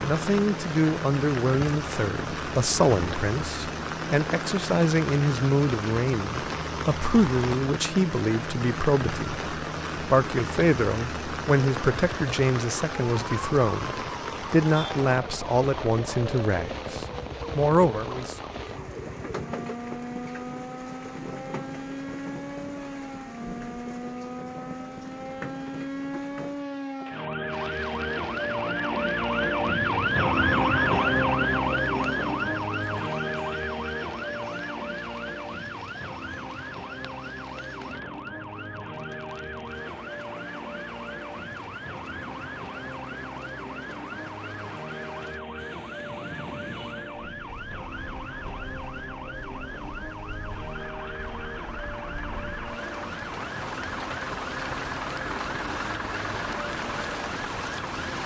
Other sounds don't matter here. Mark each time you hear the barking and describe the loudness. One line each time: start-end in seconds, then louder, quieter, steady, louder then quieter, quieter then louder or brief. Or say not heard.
not heard.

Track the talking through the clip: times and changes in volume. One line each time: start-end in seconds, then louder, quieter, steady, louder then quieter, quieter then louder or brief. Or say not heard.
0.0-18.4 steady.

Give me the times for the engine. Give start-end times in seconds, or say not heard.
50.7-58.1.